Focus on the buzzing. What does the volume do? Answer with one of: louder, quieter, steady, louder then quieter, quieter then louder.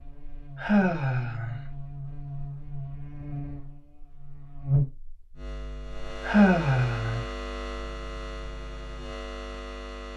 louder then quieter.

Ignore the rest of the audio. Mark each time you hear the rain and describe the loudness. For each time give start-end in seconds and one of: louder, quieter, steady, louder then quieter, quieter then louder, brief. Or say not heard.
not heard.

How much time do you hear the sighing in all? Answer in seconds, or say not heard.
2 s.